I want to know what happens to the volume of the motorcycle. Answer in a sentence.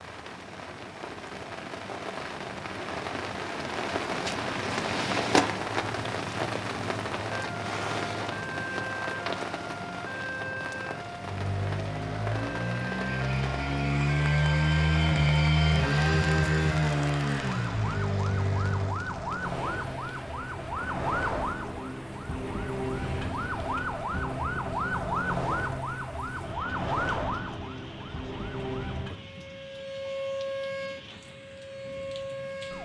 The loudness of the motorcycle goes up, then down.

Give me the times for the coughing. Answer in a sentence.
The coughing can't be heard in this clip.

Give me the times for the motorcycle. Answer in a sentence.
The motorcycle can be heard from 11.2 to 19.1 s.